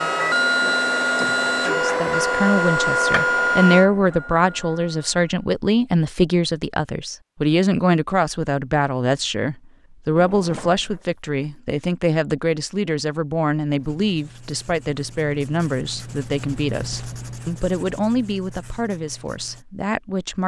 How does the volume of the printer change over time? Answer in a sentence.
The volume of the printer goes down.